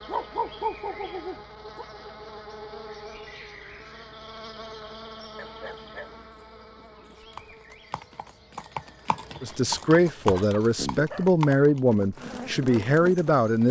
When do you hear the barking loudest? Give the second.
1 s.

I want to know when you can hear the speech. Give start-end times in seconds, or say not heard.
9.4-13.6.